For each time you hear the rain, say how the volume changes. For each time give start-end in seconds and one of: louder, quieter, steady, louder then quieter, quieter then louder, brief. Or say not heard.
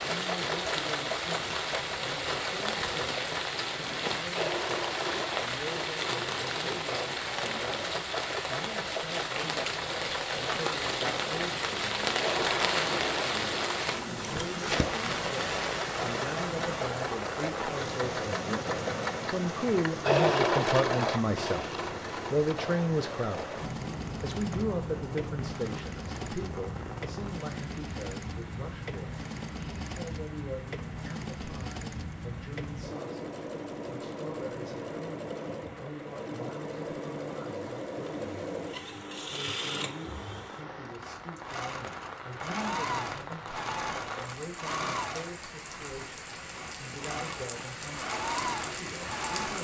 0.0-49.5 quieter then louder.